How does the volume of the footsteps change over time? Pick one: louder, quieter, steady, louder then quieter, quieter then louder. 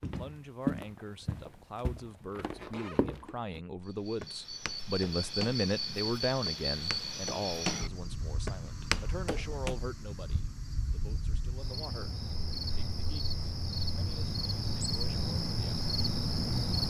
quieter then louder.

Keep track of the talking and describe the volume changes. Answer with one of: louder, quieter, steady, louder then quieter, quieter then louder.
louder then quieter.